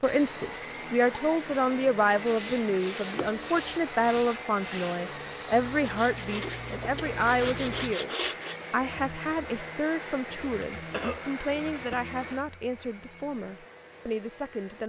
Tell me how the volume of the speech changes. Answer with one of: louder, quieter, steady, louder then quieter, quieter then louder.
quieter.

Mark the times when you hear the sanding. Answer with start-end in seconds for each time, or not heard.
2.1-8.6.